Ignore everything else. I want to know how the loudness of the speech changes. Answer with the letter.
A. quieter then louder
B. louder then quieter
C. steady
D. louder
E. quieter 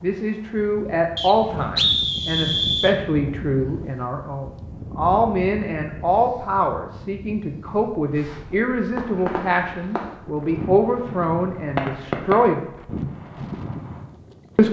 C.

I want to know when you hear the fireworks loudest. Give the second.
12 s.